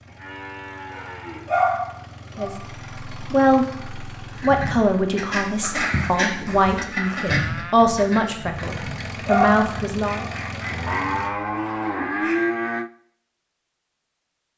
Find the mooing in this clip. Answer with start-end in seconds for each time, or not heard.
0.1-1.6, 6.2-7.8, 10.7-12.9.